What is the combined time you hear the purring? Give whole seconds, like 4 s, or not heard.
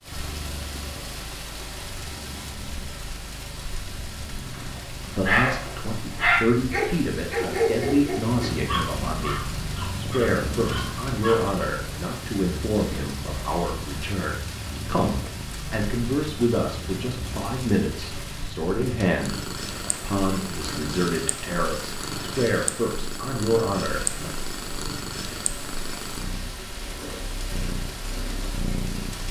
29 s.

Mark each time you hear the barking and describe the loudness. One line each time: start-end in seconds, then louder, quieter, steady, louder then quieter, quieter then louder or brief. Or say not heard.
4.5-11.6 quieter.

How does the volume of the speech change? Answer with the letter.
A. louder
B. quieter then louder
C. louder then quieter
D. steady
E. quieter
D.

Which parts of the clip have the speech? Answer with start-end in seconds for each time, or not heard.
5.0-24.3.